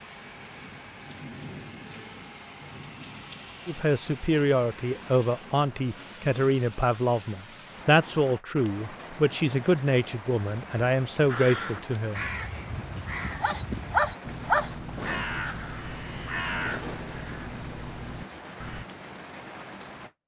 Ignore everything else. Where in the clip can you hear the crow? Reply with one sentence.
The crow can be heard from 11.2 to 18.9 s.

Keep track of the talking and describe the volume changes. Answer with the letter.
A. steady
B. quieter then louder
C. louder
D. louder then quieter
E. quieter
A.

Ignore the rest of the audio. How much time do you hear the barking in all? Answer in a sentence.
The barking can be heard for 2 seconds in total.